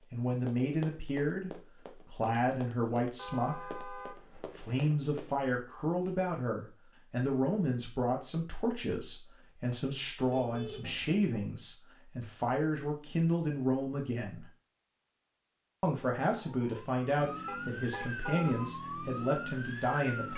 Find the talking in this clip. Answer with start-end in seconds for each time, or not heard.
0.1-14.4, 15.8-20.3.